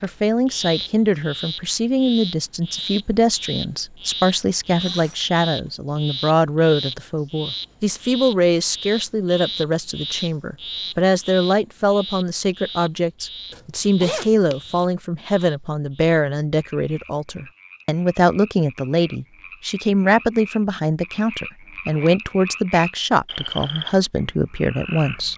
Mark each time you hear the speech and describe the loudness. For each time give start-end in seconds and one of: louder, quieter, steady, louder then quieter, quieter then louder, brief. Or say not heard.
0.0-25.3 steady.